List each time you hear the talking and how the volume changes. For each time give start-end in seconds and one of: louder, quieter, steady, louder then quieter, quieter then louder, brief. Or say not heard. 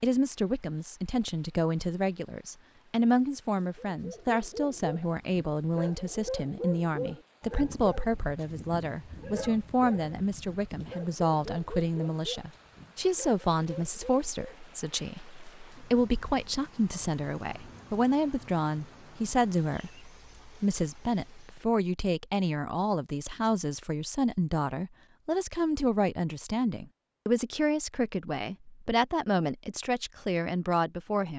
0.0-31.3 steady.